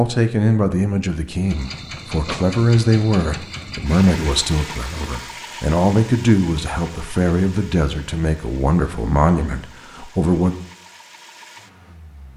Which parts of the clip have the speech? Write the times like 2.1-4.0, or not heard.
0.0-10.6.